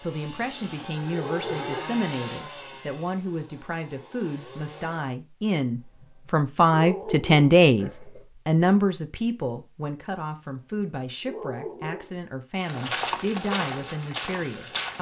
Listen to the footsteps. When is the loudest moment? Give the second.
13 s.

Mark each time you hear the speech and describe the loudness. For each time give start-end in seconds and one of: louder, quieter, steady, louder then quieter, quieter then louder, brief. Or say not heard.
0.0-14.9 louder then quieter.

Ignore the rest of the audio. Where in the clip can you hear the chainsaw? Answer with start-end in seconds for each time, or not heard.
0.0-5.0.